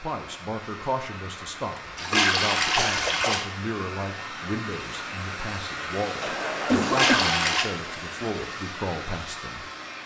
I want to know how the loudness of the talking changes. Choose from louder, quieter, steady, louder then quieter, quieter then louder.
steady.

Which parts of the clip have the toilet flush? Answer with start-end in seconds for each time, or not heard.
1.9-3.5, 6.8-7.7.